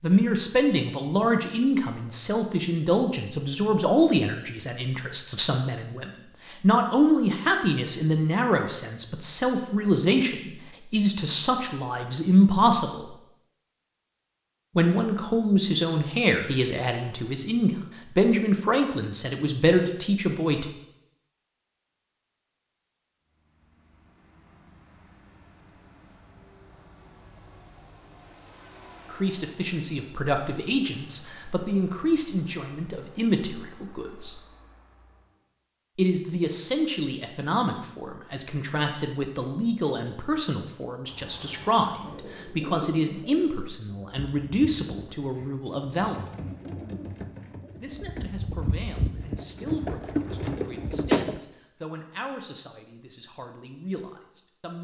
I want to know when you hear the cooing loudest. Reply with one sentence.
The volume of the cooing peaks at 51 seconds.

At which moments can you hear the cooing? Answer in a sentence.
The cooing can be heard from 41.0 to 51.4 s.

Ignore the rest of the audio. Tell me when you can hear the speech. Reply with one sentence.
You can hear the speech from 0.0 to 13.1 s, from 14.8 to 20.6 s, from 29.1 to 34.4 s, from 36.0 to 46.3 s and from 47.8 to 54.8 s.